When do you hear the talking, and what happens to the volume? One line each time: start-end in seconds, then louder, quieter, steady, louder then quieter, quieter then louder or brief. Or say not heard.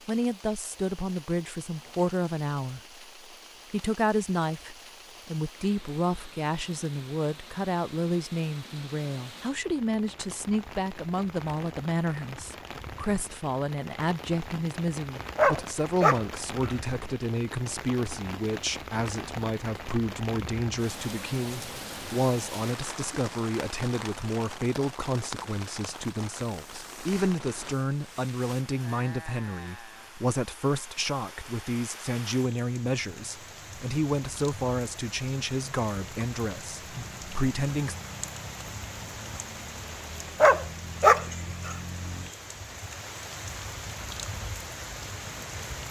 0.1-2.8 brief
3.7-38.0 steady.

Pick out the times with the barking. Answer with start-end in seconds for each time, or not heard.
15.3-16.8, 40.4-41.8.